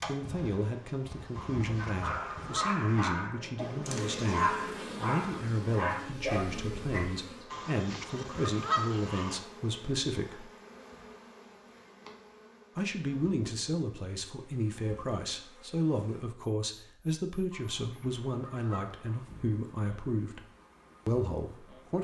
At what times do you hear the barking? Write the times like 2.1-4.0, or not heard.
1.8-7.1.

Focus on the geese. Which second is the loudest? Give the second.
9 s.